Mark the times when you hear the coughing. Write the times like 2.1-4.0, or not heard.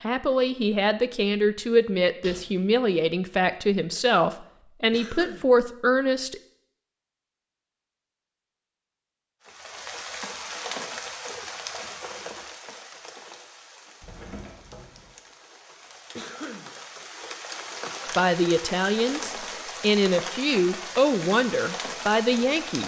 4.9-5.5, 16.1-16.7.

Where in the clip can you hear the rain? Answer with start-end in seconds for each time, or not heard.
9.4-22.8.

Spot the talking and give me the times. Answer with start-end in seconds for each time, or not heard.
0.0-6.4, 18.1-22.8.